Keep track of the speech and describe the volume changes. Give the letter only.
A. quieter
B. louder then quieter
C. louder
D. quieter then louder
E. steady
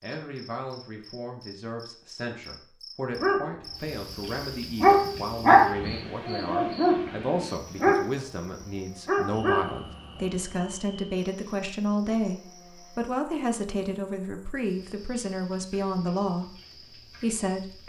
C.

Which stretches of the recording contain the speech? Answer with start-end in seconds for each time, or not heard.
0.0-17.8.